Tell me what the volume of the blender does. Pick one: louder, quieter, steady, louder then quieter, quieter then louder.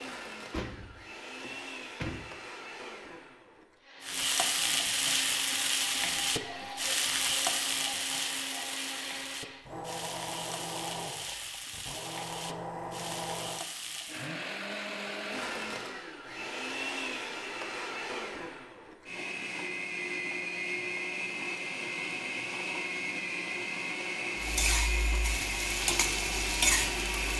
louder.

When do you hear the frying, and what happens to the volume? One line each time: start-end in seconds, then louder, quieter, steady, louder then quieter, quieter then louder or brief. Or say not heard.
4.0-14.3 quieter
24.4-27.3 brief.